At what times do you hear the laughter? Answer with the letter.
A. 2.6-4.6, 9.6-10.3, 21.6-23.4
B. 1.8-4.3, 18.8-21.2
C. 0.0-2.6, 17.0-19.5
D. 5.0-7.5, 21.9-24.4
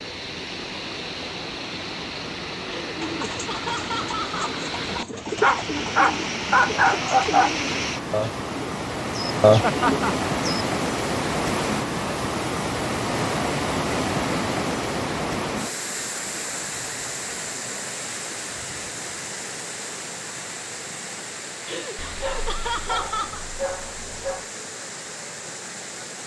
A.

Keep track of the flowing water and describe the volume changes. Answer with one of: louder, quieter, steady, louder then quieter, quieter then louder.
louder then quieter.